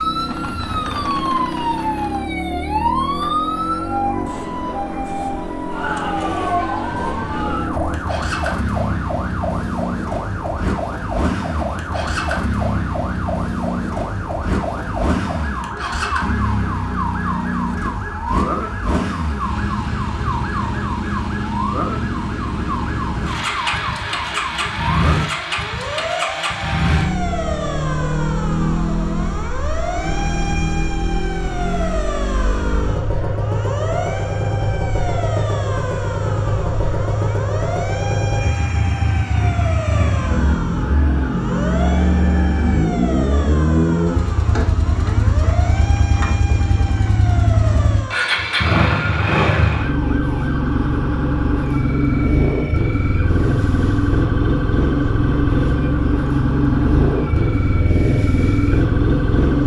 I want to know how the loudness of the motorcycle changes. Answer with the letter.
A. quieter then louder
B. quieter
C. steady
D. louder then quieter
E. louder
E.